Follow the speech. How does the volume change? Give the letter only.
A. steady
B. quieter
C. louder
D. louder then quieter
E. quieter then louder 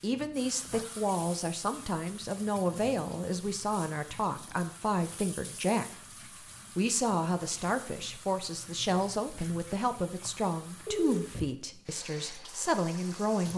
A.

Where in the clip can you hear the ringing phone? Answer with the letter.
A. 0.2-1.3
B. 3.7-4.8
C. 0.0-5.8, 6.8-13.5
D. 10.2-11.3
D.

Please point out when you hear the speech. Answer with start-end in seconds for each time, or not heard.
0.0-5.8, 6.8-13.5.